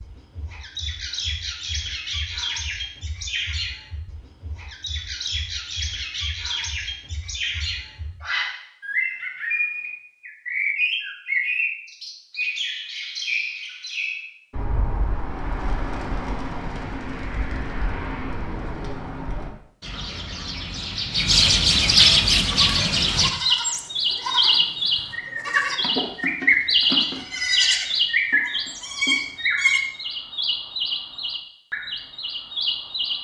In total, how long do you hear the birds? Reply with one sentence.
You can hear the birds for 33 seconds altogether.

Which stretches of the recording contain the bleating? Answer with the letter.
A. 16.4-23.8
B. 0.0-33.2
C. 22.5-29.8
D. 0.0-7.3
C.